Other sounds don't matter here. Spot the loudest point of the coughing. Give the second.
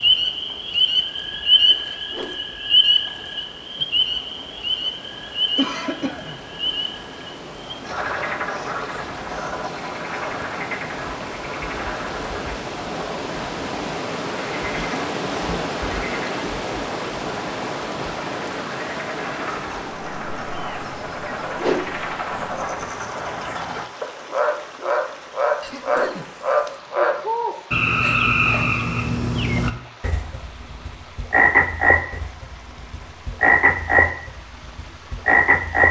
6 s.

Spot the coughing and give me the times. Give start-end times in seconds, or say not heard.
5.5-6.4, 14.8-15.8, 25.6-26.9.